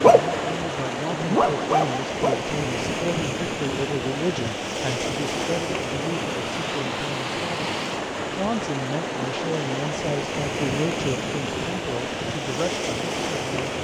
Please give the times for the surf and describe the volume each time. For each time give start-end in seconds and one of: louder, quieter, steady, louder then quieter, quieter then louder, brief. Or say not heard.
0.0-13.7 steady.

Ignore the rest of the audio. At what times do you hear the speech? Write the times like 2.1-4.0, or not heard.
0.1-13.7.